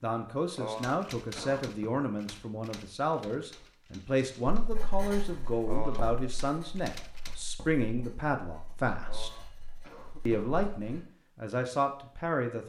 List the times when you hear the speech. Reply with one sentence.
You can hear the speech from 0.0 to 9.3 s and from 10.2 to 12.6 s.